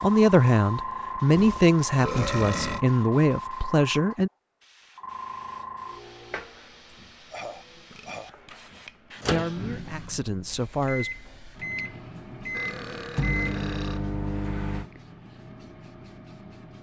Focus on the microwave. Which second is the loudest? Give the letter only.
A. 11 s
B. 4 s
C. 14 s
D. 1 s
C.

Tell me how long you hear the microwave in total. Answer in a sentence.
You can hear the microwave for 6 seconds altogether.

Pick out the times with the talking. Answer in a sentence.
The talking can be heard from 0.0 to 4.3 s and from 9.2 to 11.1 s.